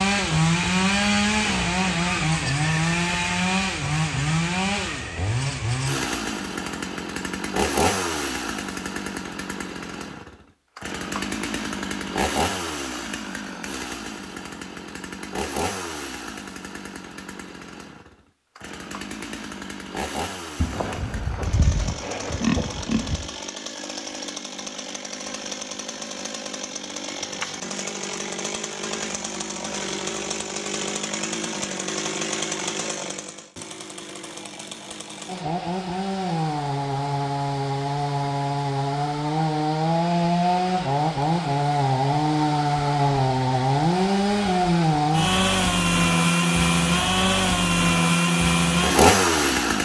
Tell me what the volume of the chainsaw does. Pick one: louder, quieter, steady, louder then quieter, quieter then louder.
quieter then louder.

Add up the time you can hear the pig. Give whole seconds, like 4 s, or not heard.
3 s.